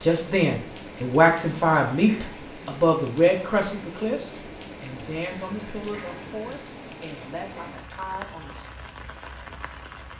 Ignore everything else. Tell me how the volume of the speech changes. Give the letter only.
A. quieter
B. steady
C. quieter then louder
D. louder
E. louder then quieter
A.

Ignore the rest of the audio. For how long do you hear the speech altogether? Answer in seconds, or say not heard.
9 s.